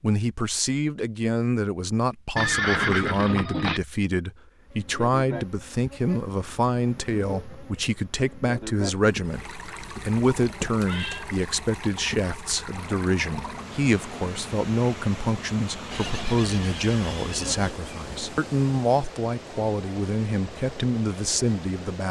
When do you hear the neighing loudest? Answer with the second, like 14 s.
3 s.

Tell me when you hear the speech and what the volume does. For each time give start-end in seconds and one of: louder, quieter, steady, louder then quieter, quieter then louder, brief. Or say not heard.
0.0-22.0 steady.